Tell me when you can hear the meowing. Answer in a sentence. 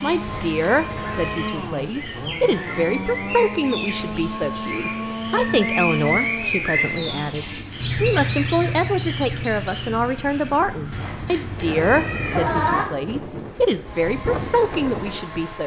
The meowing can be heard from 0.2 to 1.6 s, from 7.3 to 8.8 s and from 10.9 to 12.8 s.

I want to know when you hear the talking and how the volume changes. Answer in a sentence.
The talking can be heard from 0.0 to 15.6 s, at a steady volume.